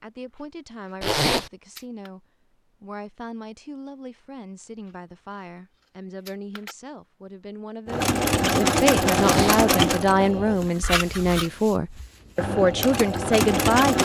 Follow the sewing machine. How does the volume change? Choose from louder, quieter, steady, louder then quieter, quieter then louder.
quieter then louder.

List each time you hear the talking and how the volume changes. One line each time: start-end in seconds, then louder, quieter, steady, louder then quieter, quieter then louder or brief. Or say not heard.
0.0-14.0 louder.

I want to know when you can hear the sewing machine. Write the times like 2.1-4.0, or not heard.
7.8-14.0.